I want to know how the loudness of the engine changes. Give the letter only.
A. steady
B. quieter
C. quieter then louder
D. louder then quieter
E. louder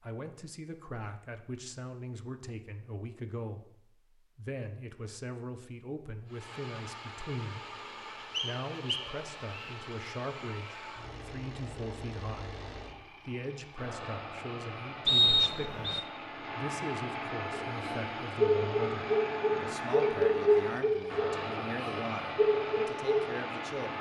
E.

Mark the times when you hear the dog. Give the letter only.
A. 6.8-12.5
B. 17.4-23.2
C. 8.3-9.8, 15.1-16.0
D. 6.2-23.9
B.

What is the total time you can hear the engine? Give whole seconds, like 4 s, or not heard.
18 s.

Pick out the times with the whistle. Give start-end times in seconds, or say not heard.
8.3-9.8, 15.1-16.0.